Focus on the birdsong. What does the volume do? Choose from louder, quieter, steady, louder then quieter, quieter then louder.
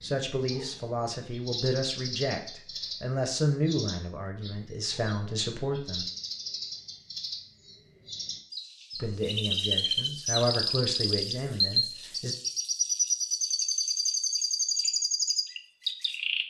louder.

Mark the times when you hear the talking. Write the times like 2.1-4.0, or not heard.
0.0-6.0, 8.9-12.3.